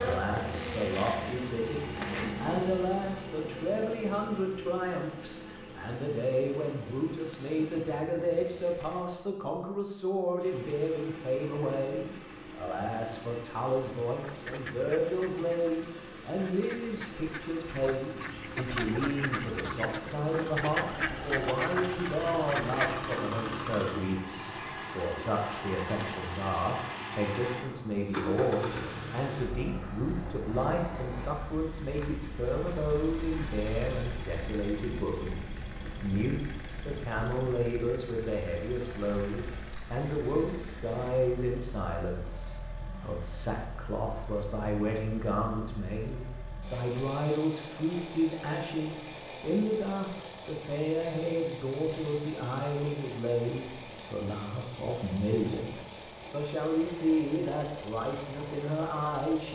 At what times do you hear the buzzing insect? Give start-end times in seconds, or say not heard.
0.0-9.3.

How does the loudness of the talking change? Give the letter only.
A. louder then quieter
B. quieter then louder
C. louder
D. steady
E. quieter
D.